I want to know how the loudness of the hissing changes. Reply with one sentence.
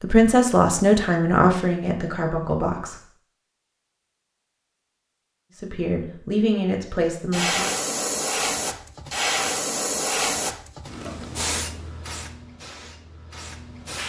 The loudness of the hissing goes down.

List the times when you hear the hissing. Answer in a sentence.
You can hear the hissing from 7.3 to 14.0 s.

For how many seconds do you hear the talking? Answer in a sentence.
The talking can be heard for 5 seconds in total.